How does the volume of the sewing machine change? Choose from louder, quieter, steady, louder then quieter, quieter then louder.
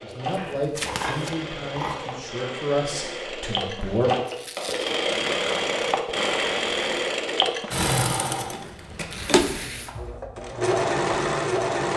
louder.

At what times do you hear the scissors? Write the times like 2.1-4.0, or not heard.
0.3-2.2, 4.3-4.8, 8.7-9.2.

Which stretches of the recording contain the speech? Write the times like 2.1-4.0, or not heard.
0.0-4.1.